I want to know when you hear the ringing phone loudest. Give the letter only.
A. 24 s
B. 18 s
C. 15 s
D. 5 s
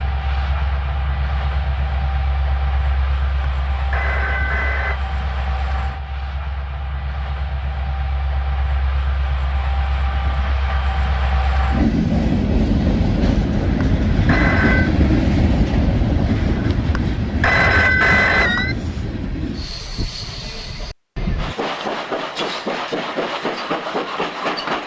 B.